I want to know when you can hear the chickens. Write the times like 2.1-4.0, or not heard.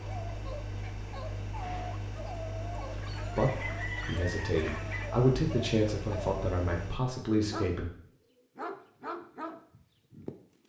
3.0-5.0.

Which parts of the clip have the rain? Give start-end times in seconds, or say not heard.
not heard.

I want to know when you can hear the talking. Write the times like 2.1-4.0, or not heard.
3.4-7.8.